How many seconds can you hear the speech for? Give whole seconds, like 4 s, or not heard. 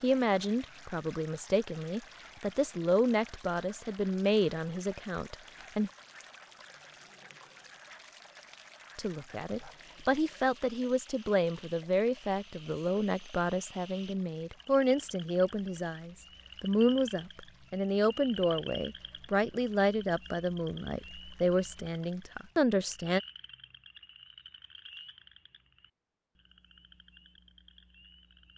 20 s.